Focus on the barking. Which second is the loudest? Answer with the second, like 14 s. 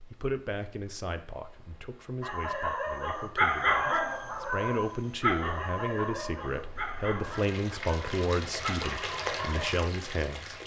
4 s.